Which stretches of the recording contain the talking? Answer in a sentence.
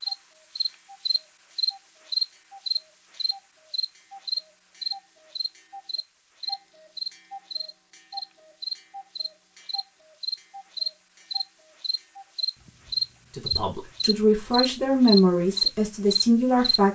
The talking can be heard from 13.3 to 16.9 s.